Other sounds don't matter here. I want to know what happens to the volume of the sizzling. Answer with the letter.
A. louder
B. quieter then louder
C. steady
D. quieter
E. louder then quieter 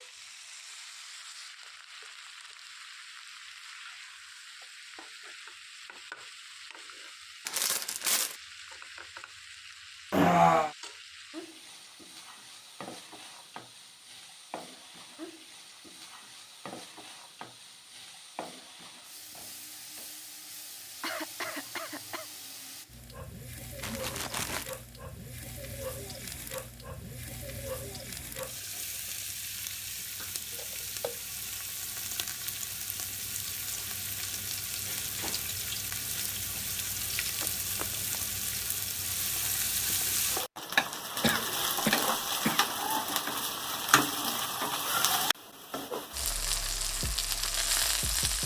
A.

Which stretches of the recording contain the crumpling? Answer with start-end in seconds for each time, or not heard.
7.5-8.4, 23.8-24.7, 37.4-38.2.